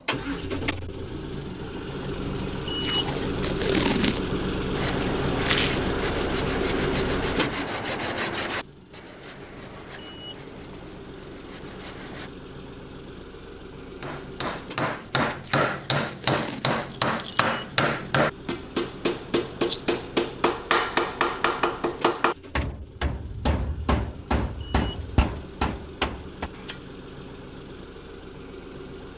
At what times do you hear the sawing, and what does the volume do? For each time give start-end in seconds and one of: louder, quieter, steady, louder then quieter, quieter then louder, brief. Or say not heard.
4.8-12.3 quieter.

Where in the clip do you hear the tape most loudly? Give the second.
4 s.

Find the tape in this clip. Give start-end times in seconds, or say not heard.
2.8-4.3, 15.4-16.8.